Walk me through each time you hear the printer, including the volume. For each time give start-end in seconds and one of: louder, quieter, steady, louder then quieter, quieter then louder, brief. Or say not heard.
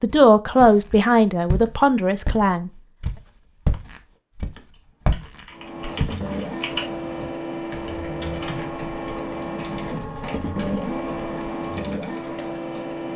5.5-13.1 steady.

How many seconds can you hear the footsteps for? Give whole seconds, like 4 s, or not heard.
6 s.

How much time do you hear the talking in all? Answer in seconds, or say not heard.
3 s.